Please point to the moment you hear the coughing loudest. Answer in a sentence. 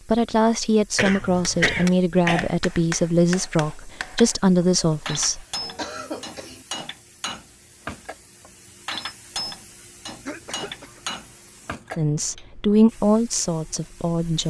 The volume of the coughing peaks at 2 seconds.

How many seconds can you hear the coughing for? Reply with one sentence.
You can hear the coughing for 4 seconds altogether.